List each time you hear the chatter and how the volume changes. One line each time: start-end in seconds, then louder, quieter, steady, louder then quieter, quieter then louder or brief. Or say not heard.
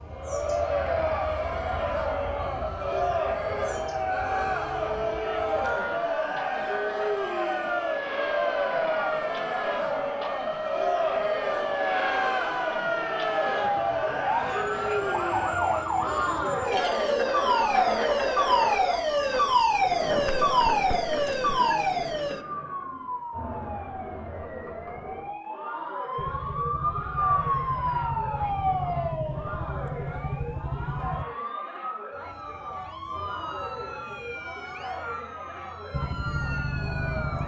0.1-37.4 quieter.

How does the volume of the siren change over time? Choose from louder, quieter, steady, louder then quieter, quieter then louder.
louder then quieter.